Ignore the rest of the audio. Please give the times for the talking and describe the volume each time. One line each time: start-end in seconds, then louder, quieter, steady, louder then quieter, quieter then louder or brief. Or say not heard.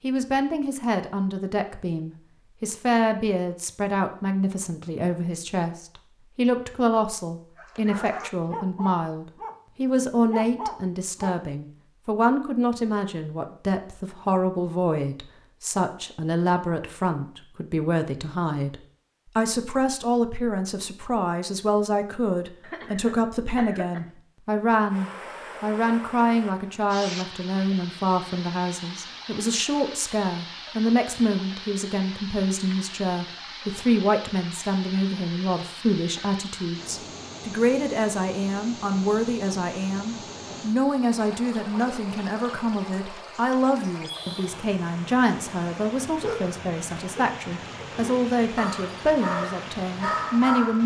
0.0-50.8 steady.